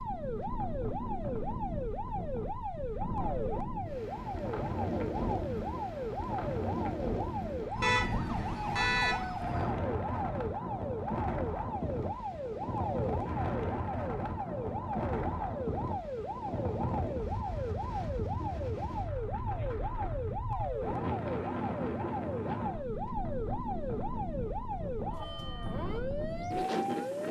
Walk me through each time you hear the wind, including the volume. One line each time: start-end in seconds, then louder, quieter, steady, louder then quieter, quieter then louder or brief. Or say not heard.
0.0-27.2 steady.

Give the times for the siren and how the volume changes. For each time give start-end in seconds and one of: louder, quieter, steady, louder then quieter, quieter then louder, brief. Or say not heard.
0.0-27.2 steady.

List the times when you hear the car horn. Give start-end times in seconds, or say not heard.
7.8-9.2.